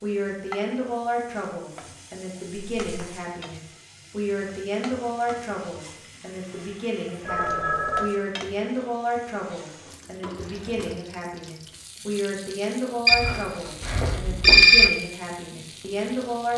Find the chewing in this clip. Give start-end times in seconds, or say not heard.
not heard.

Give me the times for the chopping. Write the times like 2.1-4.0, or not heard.
not heard.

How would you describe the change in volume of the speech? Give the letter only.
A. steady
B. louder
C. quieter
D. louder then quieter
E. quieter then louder
A.